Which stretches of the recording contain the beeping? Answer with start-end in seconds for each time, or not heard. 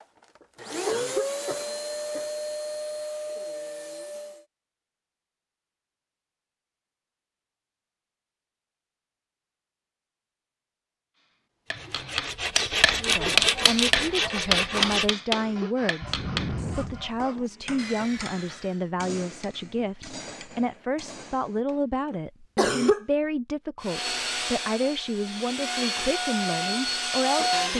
not heard.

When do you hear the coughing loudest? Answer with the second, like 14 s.
23 s.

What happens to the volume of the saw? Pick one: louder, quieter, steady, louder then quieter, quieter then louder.
quieter.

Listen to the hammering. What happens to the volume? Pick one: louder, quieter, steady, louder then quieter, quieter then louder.
quieter.